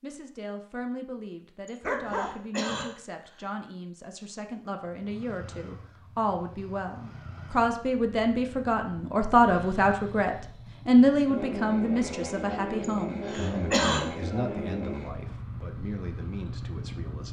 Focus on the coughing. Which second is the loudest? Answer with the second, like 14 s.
14 s.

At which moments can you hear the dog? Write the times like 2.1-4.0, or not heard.
1.8-2.4.